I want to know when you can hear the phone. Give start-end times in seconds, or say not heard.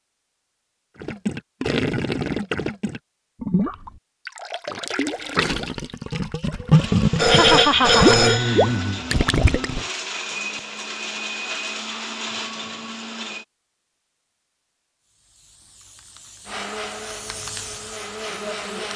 7.2-9.1.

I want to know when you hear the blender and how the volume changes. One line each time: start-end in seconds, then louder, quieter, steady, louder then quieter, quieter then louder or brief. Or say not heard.
6.8-13.4 steady
16.4-18.9 brief.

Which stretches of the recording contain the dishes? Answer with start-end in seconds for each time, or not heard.
not heard.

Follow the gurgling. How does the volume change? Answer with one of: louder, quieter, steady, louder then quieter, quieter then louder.
louder.